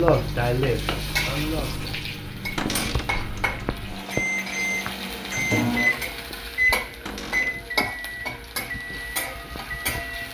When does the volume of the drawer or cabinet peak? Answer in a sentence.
The volume of the drawer or cabinet peaks at 3 seconds.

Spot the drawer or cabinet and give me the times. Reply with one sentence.
You can hear the drawer or cabinet from 2.5 to 3.1 s and from 7.0 to 7.6 s.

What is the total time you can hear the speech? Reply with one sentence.
You can hear the speech for 2 seconds altogether.